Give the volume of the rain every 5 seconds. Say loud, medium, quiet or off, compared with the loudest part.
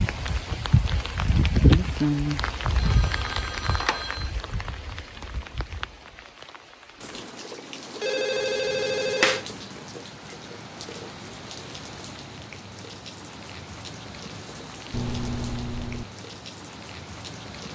loud, quiet, quiet, quiet.